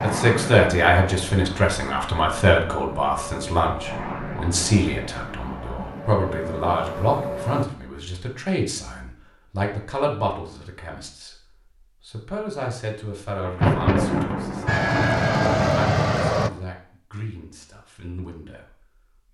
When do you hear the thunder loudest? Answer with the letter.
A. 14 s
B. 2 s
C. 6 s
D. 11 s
A.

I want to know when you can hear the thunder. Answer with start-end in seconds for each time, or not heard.
13.4-16.6.